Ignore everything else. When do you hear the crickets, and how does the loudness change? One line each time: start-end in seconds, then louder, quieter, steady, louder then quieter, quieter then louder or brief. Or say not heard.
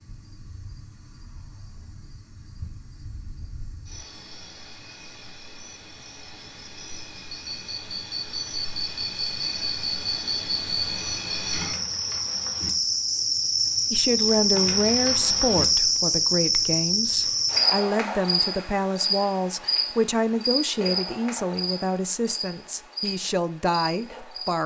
0.0-24.6 louder then quieter.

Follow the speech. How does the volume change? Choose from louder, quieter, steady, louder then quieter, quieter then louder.
steady.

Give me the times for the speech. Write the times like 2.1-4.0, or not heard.
13.9-24.6.